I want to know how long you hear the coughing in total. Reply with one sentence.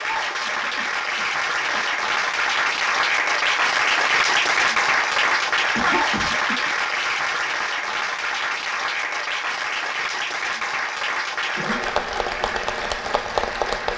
You can hear the coughing for 3 seconds altogether.